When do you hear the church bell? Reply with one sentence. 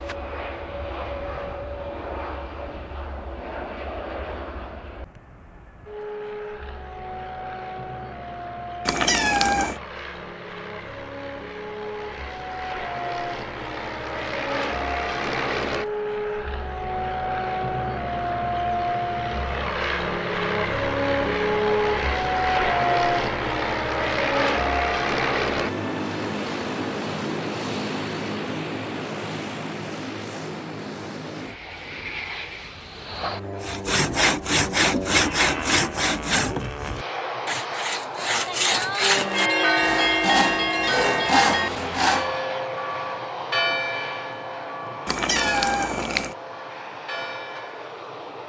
You can hear the church bell from 39.2 to 47.8 s.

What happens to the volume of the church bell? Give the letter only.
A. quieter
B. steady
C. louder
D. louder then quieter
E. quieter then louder
A.